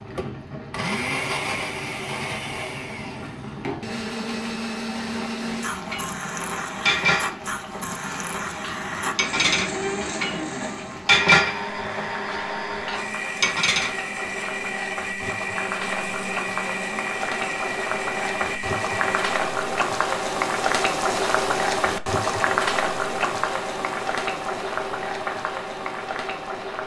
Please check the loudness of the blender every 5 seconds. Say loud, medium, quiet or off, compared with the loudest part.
loud, loud, loud, loud, off, off.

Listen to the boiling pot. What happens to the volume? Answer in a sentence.
The volume of the boiling pot goes up.